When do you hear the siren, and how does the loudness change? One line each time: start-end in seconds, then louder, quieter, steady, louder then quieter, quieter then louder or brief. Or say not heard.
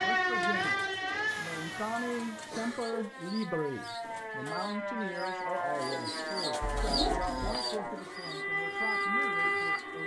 0.0-10.0 quieter then louder.